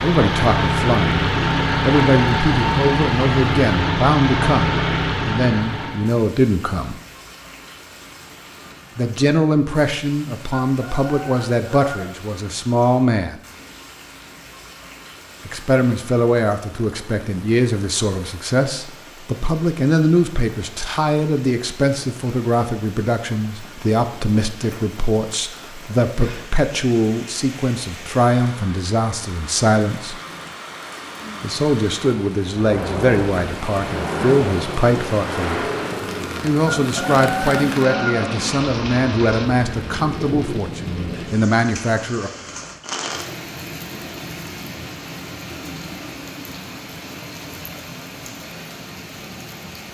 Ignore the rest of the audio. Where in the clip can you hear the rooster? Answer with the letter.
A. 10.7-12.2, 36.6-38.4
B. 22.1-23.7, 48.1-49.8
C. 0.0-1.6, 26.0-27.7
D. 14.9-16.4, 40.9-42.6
A.